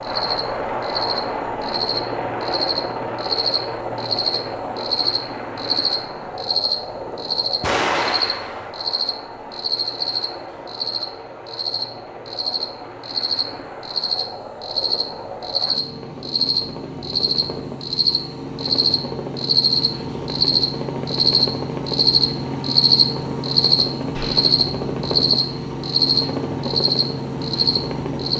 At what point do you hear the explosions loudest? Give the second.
8 s.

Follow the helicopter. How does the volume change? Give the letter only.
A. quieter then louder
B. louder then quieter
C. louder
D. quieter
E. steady
A.